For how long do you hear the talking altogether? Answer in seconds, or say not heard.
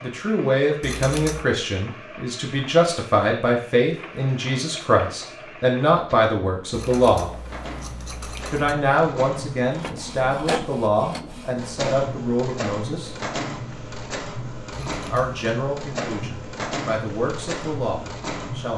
16 s.